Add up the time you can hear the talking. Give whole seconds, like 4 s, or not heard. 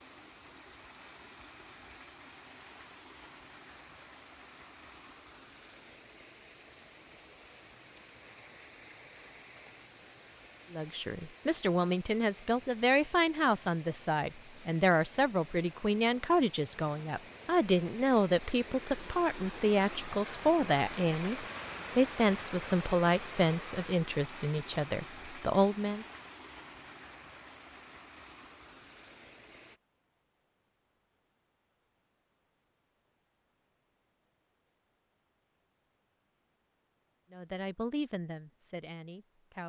18 s.